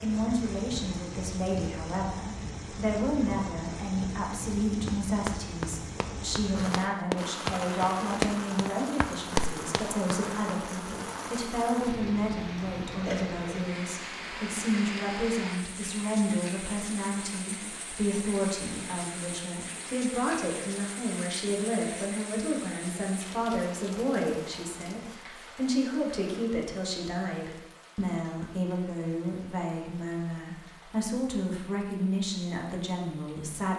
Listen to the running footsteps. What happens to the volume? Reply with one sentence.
The loudness of the running footsteps goes down, then up.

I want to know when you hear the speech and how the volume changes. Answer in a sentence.
You can hear the speech from 0.0 to 33.7 s, at a steady volume.